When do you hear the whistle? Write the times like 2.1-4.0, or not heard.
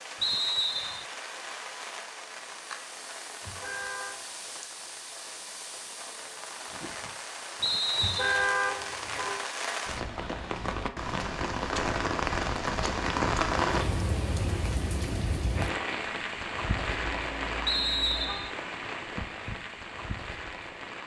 0.2-1.1, 7.6-8.5, 17.6-18.5.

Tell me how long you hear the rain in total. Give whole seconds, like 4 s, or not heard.
21 s.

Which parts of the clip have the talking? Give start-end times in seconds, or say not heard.
not heard.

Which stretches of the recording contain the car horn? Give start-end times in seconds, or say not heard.
3.4-4.2, 8.0-9.4, 16.9-18.6.